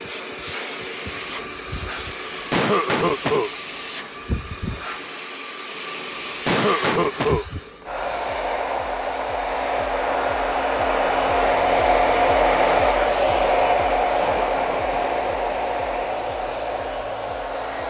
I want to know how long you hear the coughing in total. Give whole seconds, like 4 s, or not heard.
3 s.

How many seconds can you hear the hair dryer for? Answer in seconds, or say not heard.
18 s.